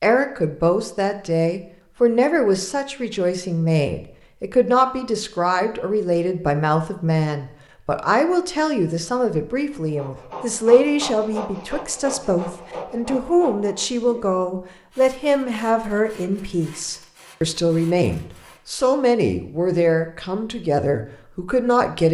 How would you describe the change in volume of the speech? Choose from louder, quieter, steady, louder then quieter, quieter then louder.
steady.